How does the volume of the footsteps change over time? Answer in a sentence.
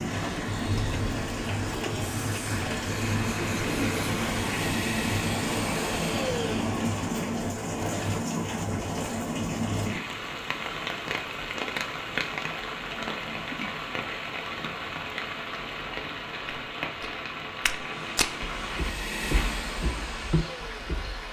The volume of the footsteps goes down, then up.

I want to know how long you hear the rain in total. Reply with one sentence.
You can hear the rain for 21 seconds altogether.